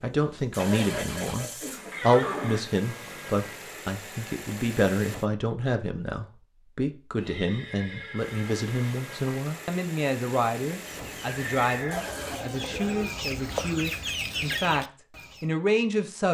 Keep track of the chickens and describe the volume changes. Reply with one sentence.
The loudness of the chickens goes up.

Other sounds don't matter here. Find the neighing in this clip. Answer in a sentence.
You can hear the neighing from 0.6 to 2.6 s, from 7.2 to 8.9 s and from 11.2 to 13.1 s.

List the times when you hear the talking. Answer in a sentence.
You can hear the talking from 0.0 to 16.2 s.